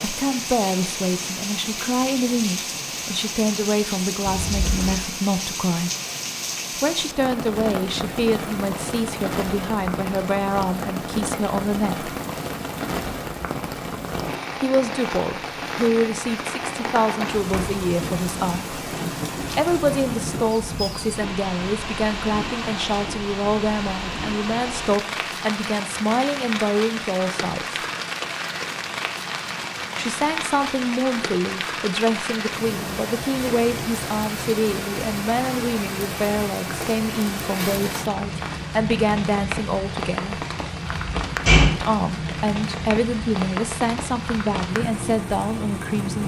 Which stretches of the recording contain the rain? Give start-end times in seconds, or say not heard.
0.0-46.2.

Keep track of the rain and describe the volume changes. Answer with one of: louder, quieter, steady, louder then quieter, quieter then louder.
steady.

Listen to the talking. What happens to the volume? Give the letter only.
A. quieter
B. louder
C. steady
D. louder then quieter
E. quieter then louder
C.